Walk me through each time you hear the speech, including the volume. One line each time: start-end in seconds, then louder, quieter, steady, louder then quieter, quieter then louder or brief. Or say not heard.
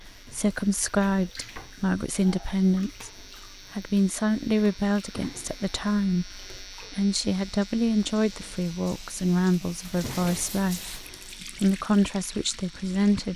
0.0-13.3 steady.